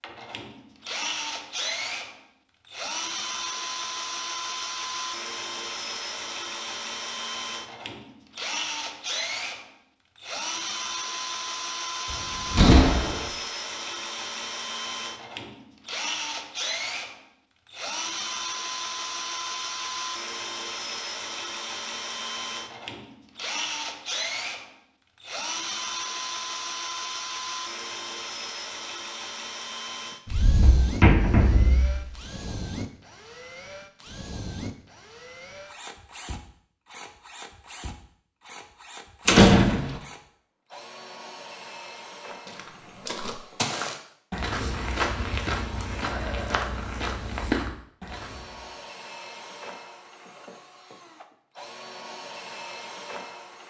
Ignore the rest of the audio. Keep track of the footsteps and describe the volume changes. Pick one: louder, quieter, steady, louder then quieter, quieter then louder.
steady.